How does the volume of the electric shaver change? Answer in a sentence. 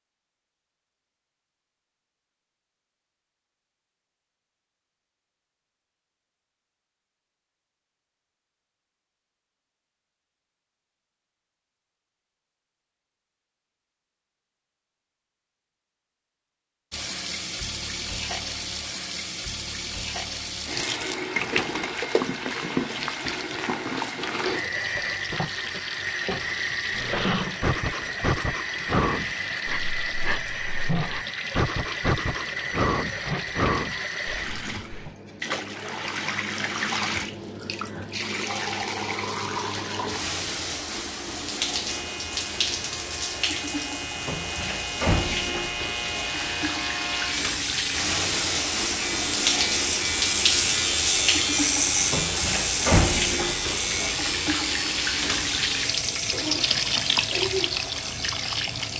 The volume of the electric shaver goes up, then down.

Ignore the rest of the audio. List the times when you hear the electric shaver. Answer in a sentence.
You can hear the electric shaver from 41.9 to 58.9 s.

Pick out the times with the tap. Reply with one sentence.
You can hear the tap from 16.9 to 58.9 s.